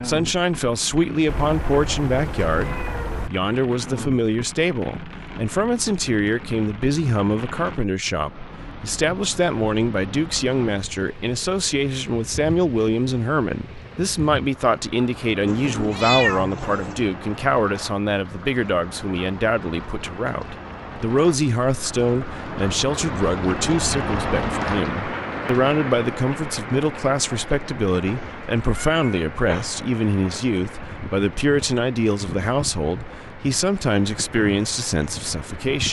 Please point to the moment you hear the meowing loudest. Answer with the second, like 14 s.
16 s.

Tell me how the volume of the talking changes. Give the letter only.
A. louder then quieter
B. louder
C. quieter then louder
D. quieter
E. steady
E.